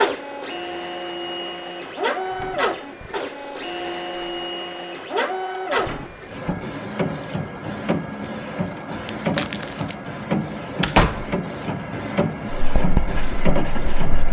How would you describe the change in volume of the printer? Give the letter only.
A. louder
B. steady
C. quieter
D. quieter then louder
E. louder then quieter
B.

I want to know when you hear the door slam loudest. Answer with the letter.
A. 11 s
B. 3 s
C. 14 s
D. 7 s
A.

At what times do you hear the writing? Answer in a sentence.
The writing can be heard from 12.8 to 14.2 s.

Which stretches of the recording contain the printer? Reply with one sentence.
The printer can be heard from 0.0 to 14.2 s.